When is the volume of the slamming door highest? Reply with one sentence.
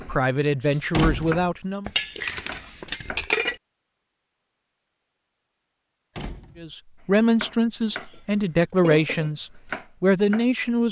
The loudest moment of the slamming door is at 1 second.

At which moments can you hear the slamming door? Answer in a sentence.
You can hear the slamming door from 0.9 to 1.4 s and from 6.2 to 6.8 s.